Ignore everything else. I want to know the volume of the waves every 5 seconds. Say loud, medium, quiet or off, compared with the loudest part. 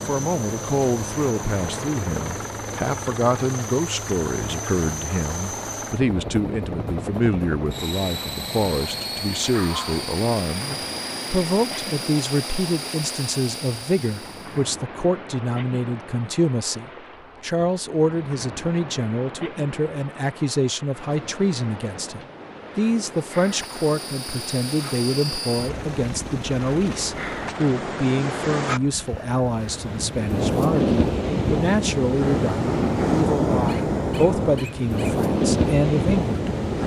quiet, quiet, quiet, quiet, quiet, medium, loud, loud.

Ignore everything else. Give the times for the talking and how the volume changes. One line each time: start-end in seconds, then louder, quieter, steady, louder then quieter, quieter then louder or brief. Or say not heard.
0.1-36.5 steady.